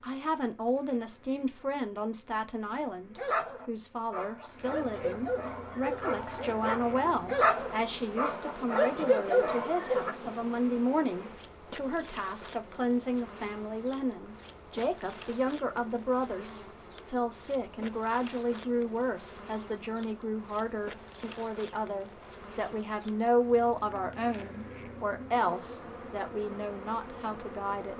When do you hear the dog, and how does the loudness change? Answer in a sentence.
The dog can be heard from 3.1 to 10.2 s, getting louder.